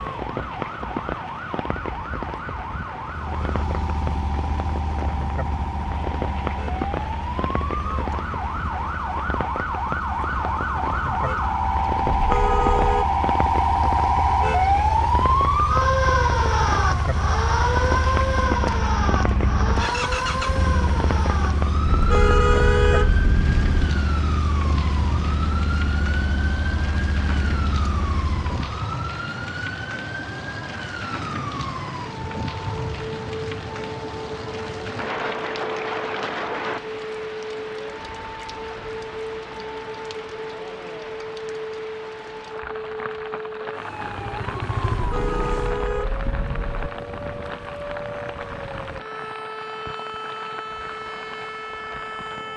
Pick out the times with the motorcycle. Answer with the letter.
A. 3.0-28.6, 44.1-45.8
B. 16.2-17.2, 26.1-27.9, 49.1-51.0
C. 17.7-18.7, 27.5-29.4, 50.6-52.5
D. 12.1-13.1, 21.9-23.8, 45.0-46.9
A.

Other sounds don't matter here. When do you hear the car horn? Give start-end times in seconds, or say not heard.
12.1-13.1, 21.9-23.8, 45.0-46.9.